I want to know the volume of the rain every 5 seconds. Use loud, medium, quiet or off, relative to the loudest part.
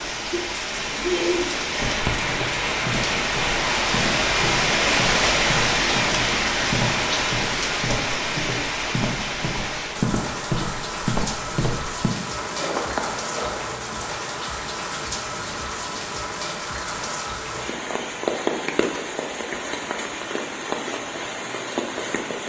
loud, loud, medium, medium, medium.